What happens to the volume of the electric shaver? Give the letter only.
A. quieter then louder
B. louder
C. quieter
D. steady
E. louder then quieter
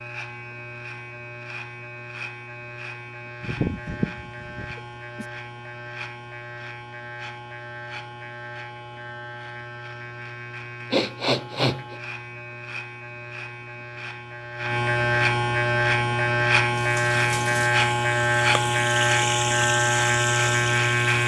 B.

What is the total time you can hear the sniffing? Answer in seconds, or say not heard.
3 s.